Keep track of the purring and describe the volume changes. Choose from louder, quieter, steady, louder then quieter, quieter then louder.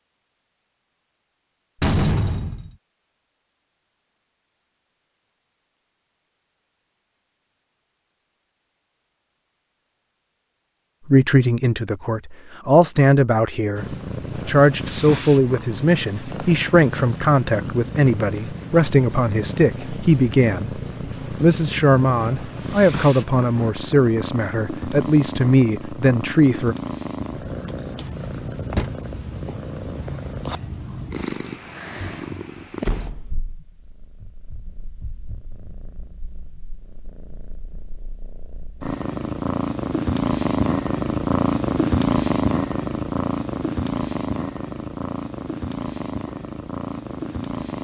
louder.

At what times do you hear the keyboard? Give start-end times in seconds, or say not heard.
not heard.